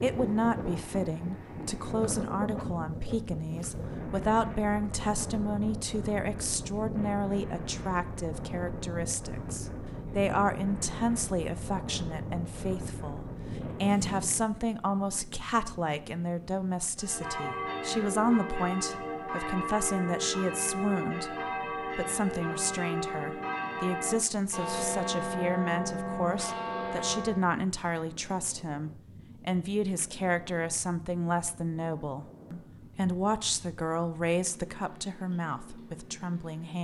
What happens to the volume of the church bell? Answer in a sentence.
The volume of the church bell stays about the same.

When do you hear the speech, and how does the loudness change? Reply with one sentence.
The speech can be heard from 0.0 to 21.4 s, at a steady volume; and from 21.9 to 36.8 s, at a steady volume.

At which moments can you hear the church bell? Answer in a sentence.
You can hear the church bell from 16.9 to 27.4 s.